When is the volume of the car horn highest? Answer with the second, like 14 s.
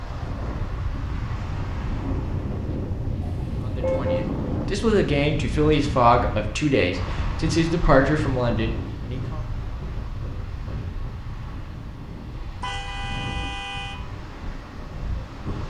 4 s.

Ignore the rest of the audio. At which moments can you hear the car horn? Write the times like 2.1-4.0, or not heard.
3.2-4.2, 12.6-14.0.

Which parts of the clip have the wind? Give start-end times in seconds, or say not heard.
0.0-15.6.